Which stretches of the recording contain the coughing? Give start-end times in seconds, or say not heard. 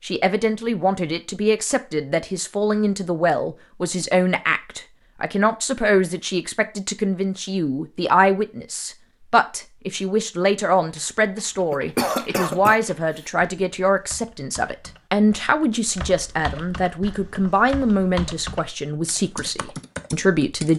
11.7-12.8.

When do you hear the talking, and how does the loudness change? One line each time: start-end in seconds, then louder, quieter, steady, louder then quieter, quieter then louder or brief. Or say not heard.
0.0-20.7 steady.